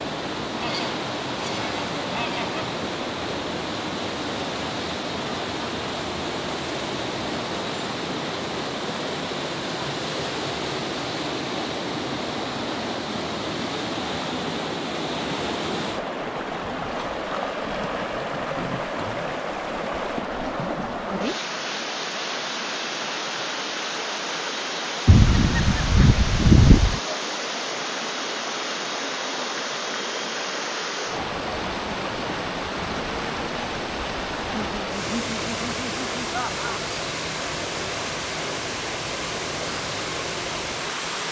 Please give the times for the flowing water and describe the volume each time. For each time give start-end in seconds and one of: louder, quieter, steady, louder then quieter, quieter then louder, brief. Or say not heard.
0.0-41.2 steady.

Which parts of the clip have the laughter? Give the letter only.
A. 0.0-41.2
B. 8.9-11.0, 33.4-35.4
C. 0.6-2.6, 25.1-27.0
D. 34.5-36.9
D.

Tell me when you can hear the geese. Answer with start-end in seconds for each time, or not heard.
0.6-2.6, 25.1-27.0.